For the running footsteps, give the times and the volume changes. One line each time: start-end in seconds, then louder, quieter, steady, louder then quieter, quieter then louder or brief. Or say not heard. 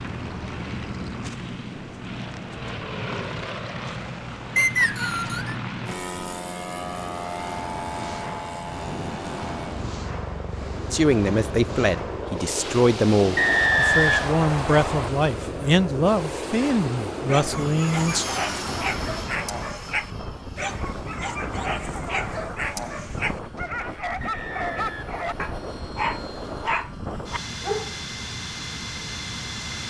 not heard.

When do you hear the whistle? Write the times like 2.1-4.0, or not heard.
4.5-5.5, 13.3-15.1, 24.2-25.9.